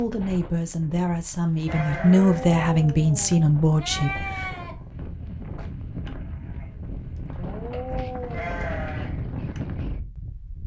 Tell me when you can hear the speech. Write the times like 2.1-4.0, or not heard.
0.0-4.5.